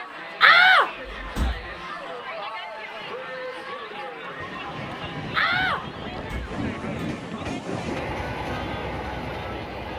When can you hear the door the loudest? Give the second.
1 s.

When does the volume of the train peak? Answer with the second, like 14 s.
8 s.